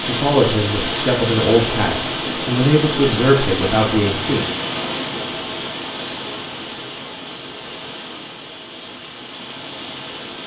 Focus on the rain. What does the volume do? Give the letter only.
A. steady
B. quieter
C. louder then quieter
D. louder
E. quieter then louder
B.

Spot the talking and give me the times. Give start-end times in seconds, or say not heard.
0.0-4.5.